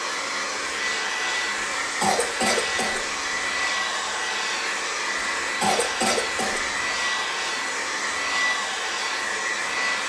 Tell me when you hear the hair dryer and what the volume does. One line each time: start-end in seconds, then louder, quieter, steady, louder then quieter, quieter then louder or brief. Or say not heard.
0.0-10.0 steady.